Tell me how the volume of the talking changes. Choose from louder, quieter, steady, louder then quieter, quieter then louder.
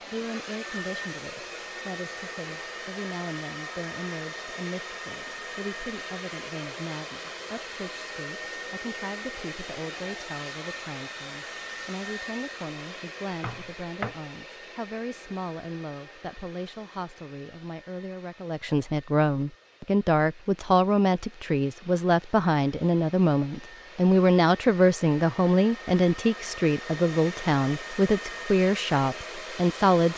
louder.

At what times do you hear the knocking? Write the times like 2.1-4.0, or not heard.
13.3-14.2.